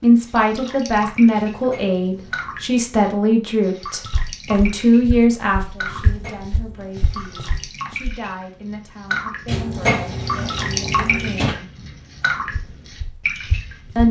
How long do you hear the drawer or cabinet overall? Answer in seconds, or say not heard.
5 s.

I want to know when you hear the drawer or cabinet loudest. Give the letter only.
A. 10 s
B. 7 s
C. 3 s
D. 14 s
A.